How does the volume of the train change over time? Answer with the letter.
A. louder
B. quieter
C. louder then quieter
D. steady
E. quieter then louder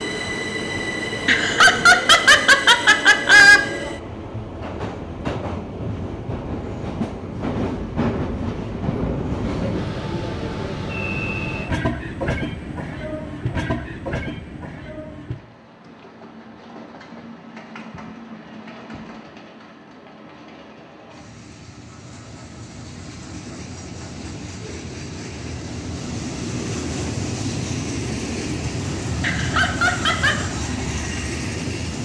E.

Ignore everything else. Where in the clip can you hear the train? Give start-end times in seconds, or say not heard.
0.0-32.0.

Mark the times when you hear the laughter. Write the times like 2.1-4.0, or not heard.
1.2-3.6, 29.2-30.5.